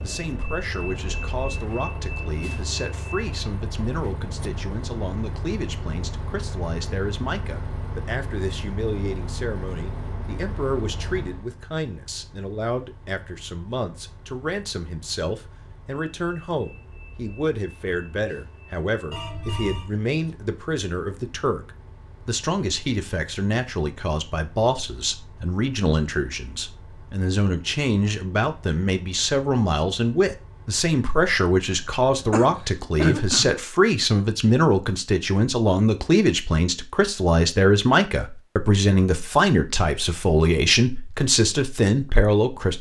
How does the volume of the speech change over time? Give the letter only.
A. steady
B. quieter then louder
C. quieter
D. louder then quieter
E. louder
E.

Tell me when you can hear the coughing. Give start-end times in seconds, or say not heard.
32.3-33.5.